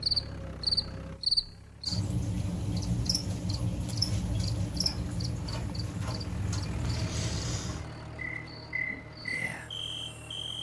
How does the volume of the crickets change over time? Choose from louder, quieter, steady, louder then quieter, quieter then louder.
quieter.